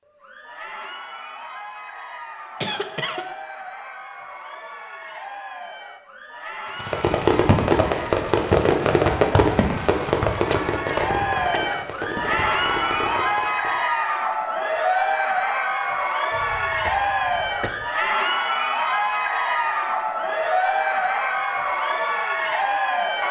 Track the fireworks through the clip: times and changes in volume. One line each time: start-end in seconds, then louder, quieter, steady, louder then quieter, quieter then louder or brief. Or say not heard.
6.8-13.8 quieter.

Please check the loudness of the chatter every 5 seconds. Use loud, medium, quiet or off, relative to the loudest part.
quiet, quiet, loud, loud, loud.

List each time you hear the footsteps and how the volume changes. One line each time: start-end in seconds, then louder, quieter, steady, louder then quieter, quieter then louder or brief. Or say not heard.
not heard.